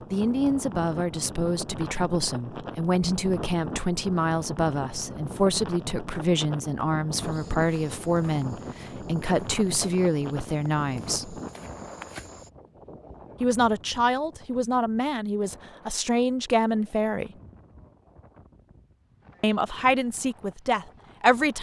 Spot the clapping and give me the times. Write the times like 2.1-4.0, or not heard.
not heard.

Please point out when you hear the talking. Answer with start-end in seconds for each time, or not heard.
0.1-11.3, 13.4-17.3, 19.4-21.5.